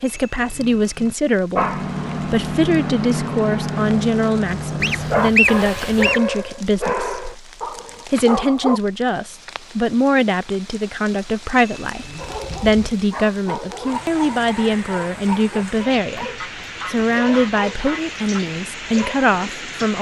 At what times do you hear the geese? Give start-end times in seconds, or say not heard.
4.8-6.2, 16.4-18.4.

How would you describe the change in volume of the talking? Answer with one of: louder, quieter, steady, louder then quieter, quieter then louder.
steady.